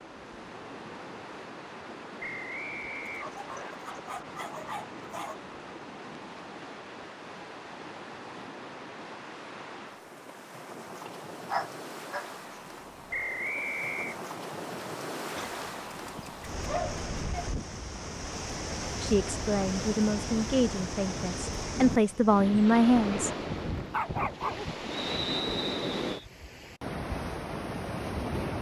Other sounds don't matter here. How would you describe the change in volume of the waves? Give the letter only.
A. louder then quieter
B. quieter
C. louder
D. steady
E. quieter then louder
C.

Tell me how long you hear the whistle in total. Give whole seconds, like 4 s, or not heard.
4 s.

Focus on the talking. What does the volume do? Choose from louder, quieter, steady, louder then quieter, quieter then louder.
quieter then louder.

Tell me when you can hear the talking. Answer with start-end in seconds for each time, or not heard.
19.0-23.3.